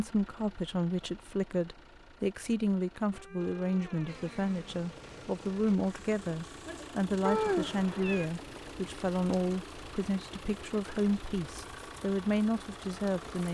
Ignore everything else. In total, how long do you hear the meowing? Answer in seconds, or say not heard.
3 s.